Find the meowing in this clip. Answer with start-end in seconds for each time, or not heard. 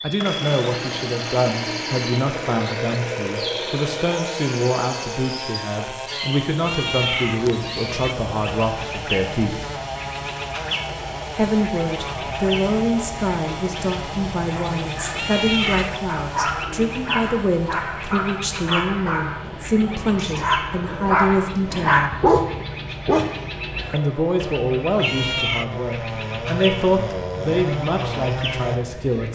6.6-8.2, 15.1-15.9, 24.9-25.6.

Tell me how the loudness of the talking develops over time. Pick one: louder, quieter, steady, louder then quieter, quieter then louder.
steady.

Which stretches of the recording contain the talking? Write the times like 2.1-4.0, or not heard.
0.0-9.7, 11.3-22.2, 23.9-29.3.